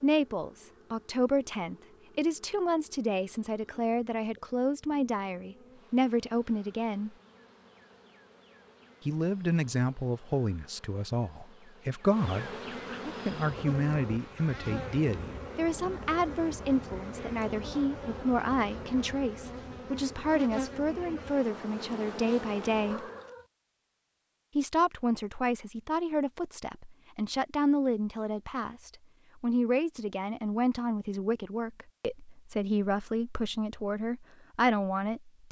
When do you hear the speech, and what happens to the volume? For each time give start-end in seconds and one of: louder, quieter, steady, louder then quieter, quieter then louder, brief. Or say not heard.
0.0-7.1 steady
9.1-23.1 steady
24.6-35.4 steady.